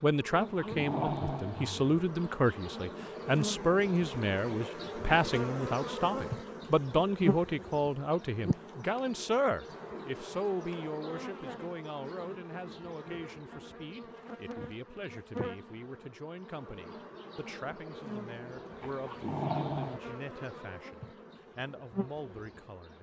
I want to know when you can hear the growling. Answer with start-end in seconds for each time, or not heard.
0.3-2.0, 18.8-20.0.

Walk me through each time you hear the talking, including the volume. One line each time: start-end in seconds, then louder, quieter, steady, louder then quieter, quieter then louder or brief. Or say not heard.
0.0-22.9 quieter.